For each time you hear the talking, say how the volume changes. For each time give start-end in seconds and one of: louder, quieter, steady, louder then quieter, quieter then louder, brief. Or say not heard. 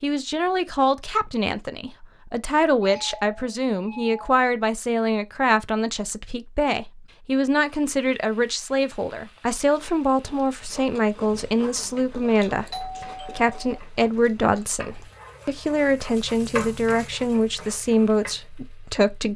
0.0-19.3 steady.